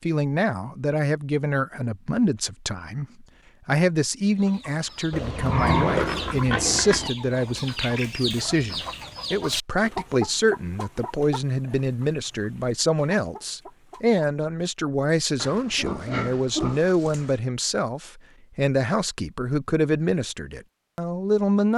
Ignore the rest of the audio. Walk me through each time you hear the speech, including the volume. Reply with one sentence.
You can hear the speech from 0.0 to 21.7 s, at a steady volume.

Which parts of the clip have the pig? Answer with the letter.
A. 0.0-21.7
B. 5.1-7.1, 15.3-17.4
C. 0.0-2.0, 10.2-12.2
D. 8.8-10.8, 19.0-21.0
B.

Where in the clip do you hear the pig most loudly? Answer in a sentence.
The volume of the pig peaks at 6 seconds.